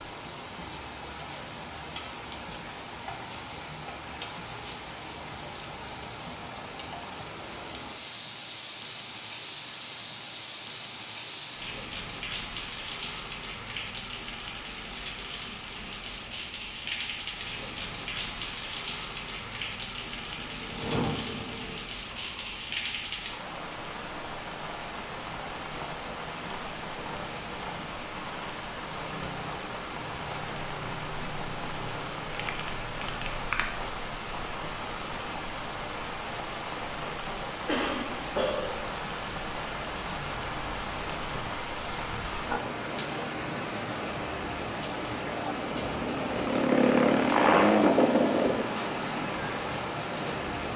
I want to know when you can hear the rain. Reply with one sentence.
You can hear the rain from 0.0 to 50.7 s.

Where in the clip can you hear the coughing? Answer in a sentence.
You can hear the coughing from 37.6 to 38.9 s.